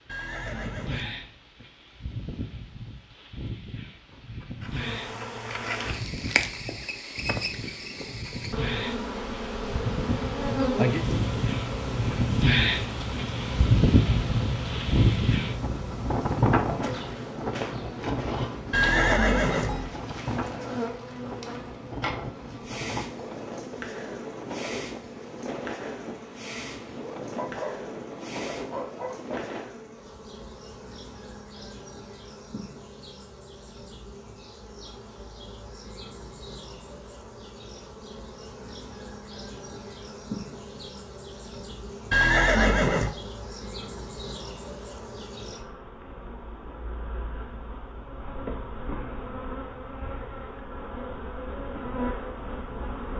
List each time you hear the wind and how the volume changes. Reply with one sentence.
The wind can be heard from 0.0 to 29.7 s, getting louder then quieter.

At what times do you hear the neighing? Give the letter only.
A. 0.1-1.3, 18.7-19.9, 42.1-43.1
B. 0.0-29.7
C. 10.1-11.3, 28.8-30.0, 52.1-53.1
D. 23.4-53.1
A.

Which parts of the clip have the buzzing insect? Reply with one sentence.
You can hear the buzzing insect from 4.6 to 53.1 s.